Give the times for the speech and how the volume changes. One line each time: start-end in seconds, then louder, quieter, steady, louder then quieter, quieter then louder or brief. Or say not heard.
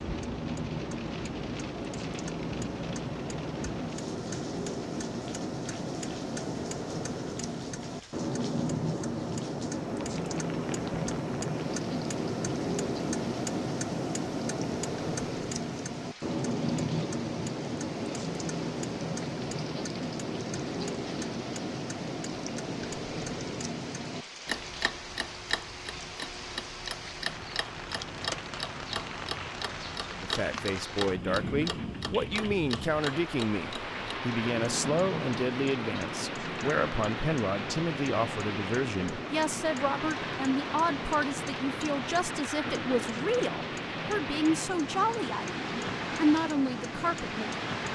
30.1-47.8 steady.